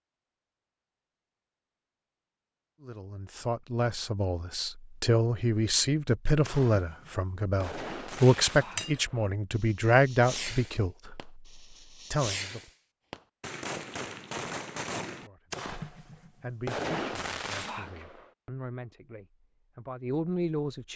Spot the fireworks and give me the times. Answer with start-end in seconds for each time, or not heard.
6.5-18.2.